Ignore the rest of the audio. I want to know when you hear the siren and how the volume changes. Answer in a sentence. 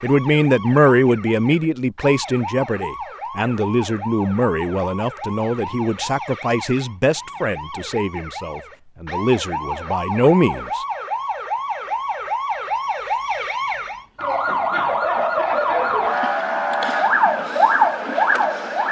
The siren can be heard from 0.0 to 18.8 s, getting louder.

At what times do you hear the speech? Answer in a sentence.
You can hear the speech from 0.0 to 10.8 s.